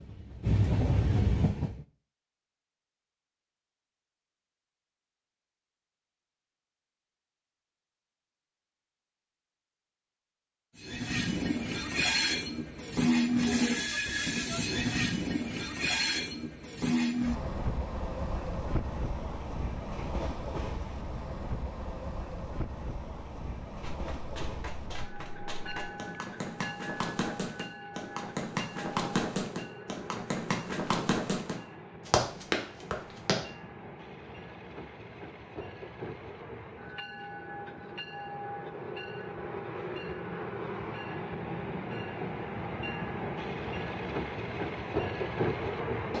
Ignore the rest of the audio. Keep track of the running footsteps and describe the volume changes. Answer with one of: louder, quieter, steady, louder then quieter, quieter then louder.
louder.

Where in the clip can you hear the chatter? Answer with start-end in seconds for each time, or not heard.
not heard.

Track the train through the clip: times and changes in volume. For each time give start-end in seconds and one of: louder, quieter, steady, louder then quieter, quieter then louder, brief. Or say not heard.
0.0-1.9 brief
10.8-46.1 quieter then louder.